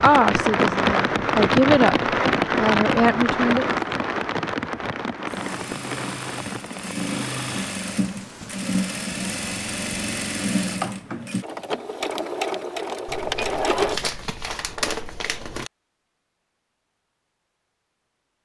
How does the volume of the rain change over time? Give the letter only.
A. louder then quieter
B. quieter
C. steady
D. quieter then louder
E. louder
B.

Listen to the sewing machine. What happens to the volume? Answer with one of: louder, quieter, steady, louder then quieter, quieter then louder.
louder.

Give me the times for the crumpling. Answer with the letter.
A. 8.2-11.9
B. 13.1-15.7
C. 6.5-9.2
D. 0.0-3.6
B.